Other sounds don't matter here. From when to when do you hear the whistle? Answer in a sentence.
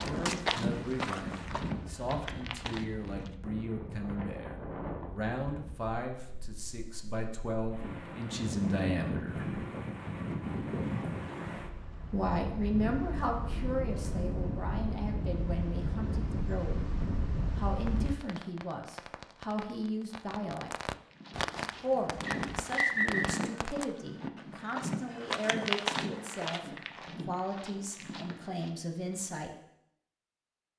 You can hear the whistle from 22.2 to 23.4 s.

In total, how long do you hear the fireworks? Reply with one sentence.
The fireworks can be heard for 6 seconds in total.